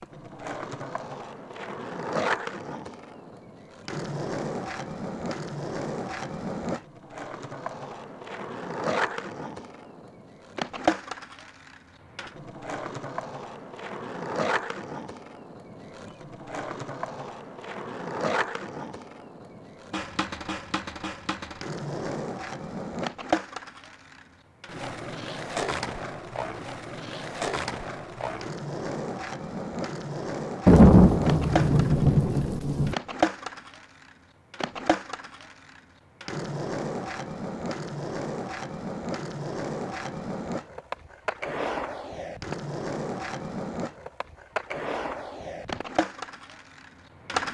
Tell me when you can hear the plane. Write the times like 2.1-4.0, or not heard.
not heard.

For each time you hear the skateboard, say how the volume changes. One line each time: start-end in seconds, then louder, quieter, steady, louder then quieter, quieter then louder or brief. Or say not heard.
0.0-47.4 steady.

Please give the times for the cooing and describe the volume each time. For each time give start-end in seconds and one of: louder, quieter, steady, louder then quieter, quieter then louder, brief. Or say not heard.
not heard.